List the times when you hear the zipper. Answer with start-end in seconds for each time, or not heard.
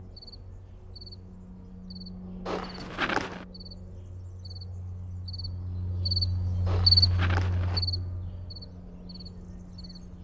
2.5-3.5, 6.7-7.8.